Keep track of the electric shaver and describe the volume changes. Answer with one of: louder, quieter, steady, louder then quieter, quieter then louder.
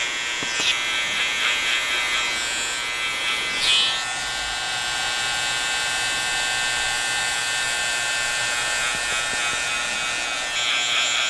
steady.